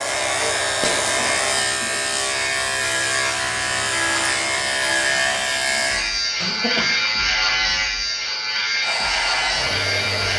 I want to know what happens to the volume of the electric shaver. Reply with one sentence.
The loudness of the electric shaver stays about the same.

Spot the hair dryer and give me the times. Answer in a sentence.
The hair dryer can be heard from 0.0 to 1.6 s and from 8.8 to 10.3 s.